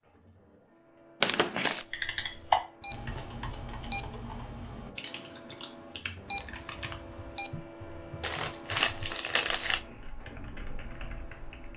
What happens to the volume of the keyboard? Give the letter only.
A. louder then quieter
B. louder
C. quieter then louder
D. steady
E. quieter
E.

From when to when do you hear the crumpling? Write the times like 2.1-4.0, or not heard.
1.2-1.9, 8.2-9.8.